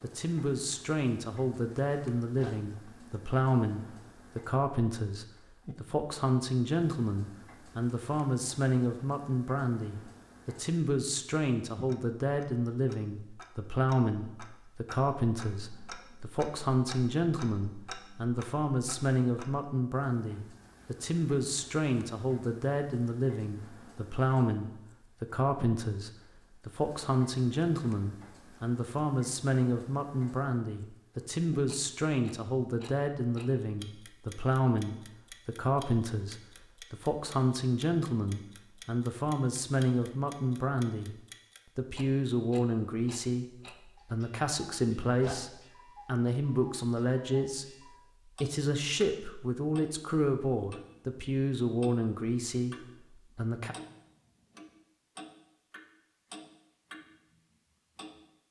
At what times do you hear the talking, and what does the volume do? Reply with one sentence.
You can hear the talking from 0.0 to 53.8 s, at a steady volume.